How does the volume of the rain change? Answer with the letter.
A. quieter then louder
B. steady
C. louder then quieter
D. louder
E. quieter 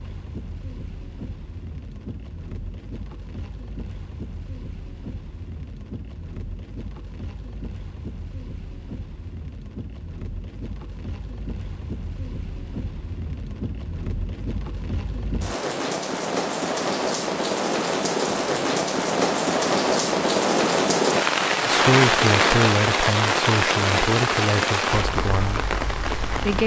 D.